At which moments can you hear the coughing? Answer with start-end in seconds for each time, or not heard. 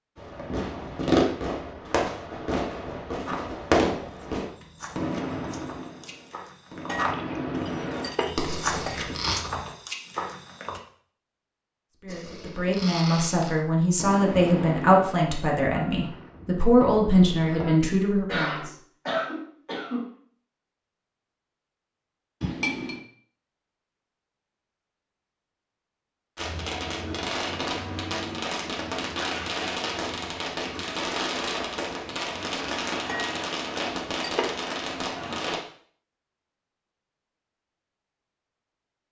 18.2-20.1.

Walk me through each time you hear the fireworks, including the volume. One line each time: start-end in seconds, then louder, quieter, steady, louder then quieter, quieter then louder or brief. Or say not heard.
0.1-9.3 quieter then louder
12.1-18.1 quieter then louder
26.4-35.6 steady.